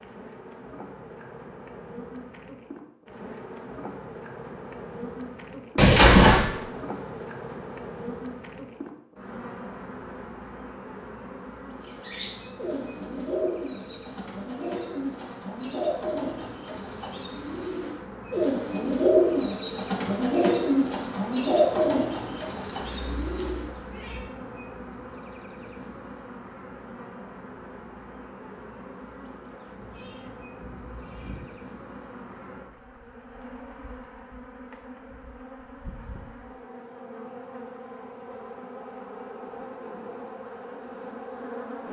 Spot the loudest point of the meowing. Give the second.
6 s.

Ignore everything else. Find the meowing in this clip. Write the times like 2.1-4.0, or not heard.
5.8-6.4, 22.8-24.2, 29.8-31.4.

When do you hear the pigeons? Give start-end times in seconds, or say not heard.
11.8-23.6.